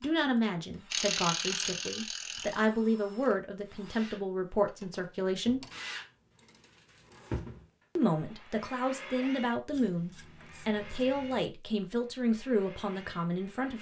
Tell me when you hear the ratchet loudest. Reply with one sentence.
The loudest moment of the ratchet is at 1 second.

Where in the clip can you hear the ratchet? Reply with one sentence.
You can hear the ratchet from 0.9 to 2.6 s, from 4.7 to 7.2 s and from 9.7 to 11.5 s.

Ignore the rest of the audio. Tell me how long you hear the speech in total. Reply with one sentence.
The speech can be heard for 11 seconds in total.